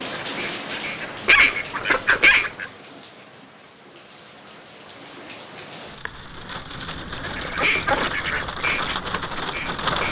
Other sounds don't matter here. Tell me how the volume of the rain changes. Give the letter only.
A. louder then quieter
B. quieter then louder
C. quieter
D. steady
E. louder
B.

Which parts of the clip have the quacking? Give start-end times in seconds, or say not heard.
0.1-2.6, 7.2-10.0.